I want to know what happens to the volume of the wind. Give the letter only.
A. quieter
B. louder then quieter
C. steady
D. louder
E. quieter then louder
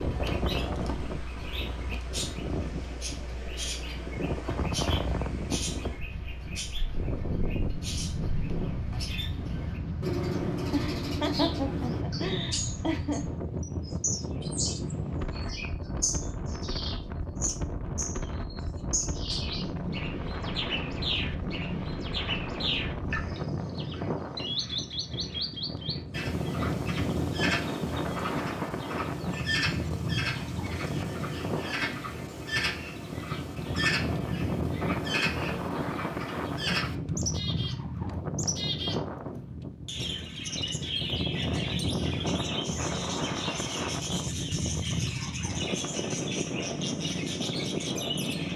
C.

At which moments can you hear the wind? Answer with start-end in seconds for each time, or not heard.
0.0-48.5.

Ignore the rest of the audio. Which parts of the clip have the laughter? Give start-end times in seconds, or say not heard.
10.7-13.2.